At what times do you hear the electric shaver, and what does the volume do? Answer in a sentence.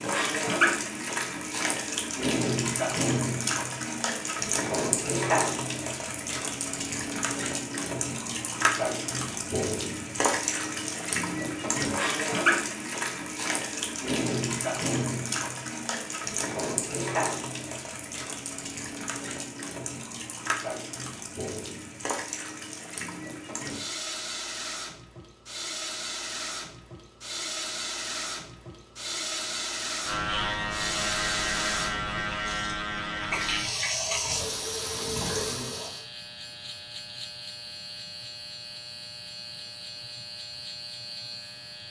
The electric shaver can be heard from 30.0 to 41.8 s, getting quieter.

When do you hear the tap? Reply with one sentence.
The tap can be heard from 0.0 to 36.0 s.